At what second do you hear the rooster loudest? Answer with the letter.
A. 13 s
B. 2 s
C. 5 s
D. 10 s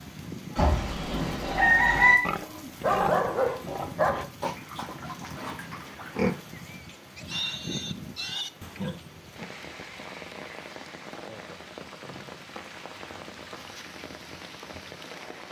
B.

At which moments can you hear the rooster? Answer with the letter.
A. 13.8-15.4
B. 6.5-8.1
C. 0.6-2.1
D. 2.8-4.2
C.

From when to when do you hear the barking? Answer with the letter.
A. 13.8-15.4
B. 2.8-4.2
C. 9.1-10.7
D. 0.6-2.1
B.